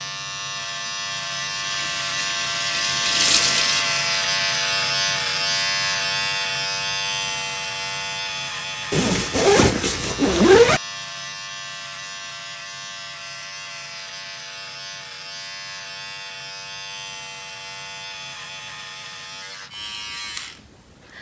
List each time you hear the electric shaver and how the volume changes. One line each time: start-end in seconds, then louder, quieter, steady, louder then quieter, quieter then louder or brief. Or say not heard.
0.0-21.1 quieter.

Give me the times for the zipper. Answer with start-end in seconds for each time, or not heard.
8.9-10.8.